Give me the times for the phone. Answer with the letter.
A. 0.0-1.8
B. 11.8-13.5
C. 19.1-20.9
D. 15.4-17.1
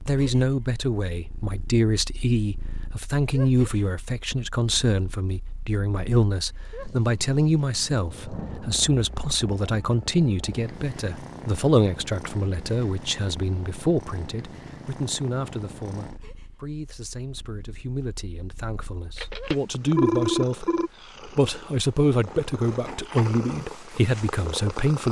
C.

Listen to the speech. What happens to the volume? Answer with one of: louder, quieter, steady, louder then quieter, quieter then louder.
quieter then louder.